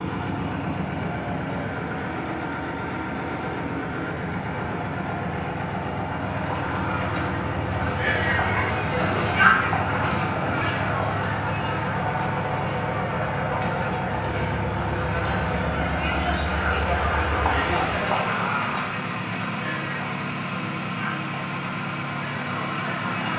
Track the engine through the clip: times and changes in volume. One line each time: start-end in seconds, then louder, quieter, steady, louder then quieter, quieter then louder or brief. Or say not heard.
0.0-23.3 steady.